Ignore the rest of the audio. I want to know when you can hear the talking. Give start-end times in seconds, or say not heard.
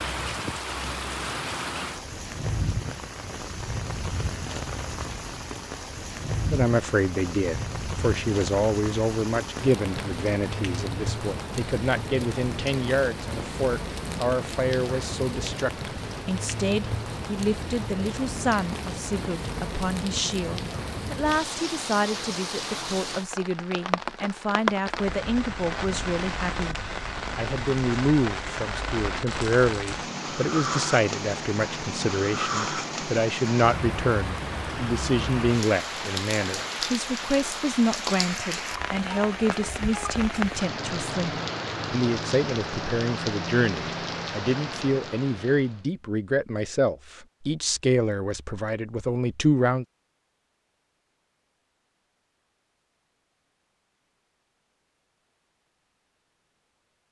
6.5-49.9.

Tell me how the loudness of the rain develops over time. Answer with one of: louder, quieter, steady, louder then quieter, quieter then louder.
steady.